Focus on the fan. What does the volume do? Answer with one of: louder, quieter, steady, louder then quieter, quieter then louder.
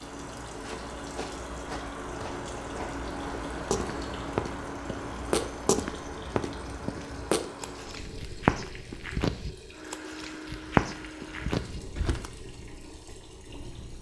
quieter.